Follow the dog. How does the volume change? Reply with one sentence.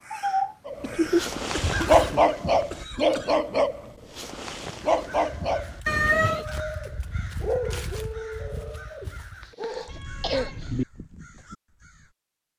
The volume of the dog goes down.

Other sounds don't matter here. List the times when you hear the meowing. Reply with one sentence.
You can hear the meowing from 0.1 to 1.2 s, from 5.8 to 6.5 s and from 9.8 to 10.8 s.